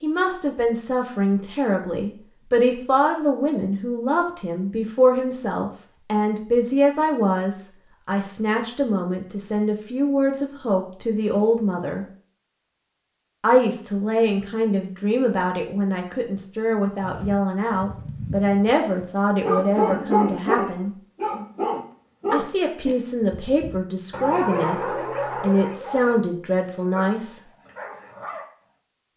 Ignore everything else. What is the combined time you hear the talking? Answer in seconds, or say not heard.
24 s.